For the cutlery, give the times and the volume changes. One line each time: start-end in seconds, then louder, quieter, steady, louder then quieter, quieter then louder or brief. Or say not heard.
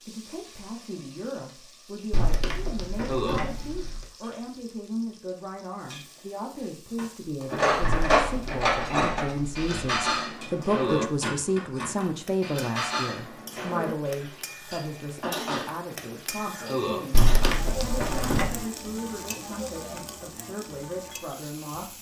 7.0-18.4 quieter.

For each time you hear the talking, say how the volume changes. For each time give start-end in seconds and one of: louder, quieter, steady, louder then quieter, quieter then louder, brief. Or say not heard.
0.0-21.9 louder then quieter.